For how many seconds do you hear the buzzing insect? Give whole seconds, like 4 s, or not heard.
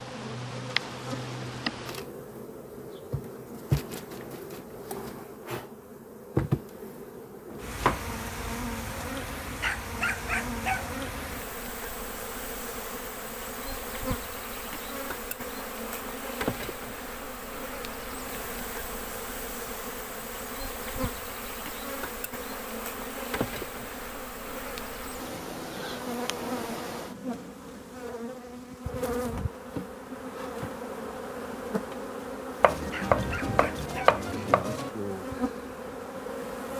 37 s.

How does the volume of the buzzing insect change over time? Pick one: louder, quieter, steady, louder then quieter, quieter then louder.
steady.